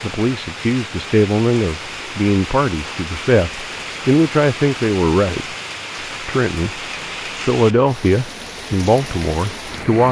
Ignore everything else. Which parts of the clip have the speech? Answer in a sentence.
The speech can be heard from 0.0 to 5.5 s, from 6.2 to 6.8 s and from 7.5 to 10.0 s.